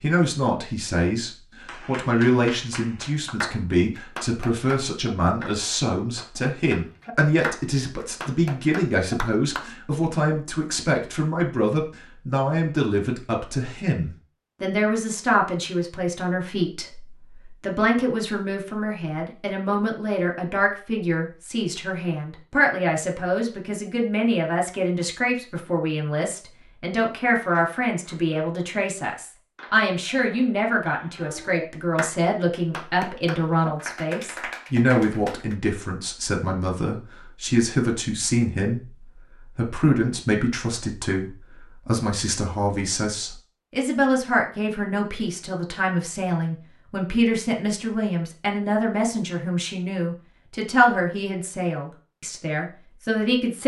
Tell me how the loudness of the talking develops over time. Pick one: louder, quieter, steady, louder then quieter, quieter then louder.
steady.